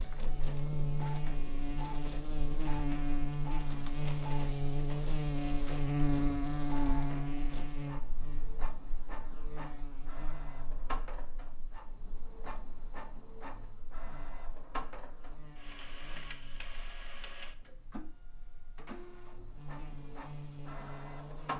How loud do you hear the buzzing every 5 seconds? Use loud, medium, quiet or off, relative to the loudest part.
loud, loud, quiet, quiet, medium.